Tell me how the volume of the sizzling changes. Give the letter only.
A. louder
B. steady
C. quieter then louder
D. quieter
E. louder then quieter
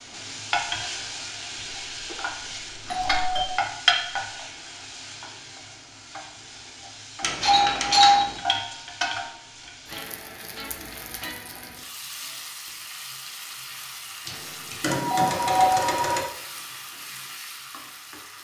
D.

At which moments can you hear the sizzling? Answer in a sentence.
The sizzling can be heard from 0.0 to 18.3 s.